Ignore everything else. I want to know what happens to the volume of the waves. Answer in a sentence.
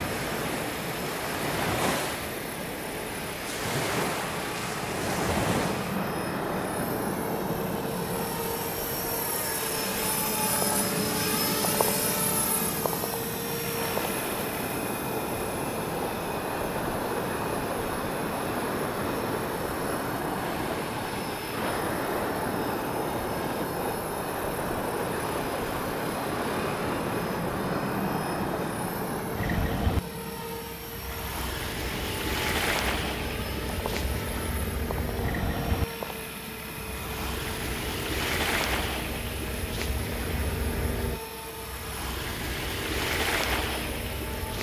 The loudness of the waves stays about the same.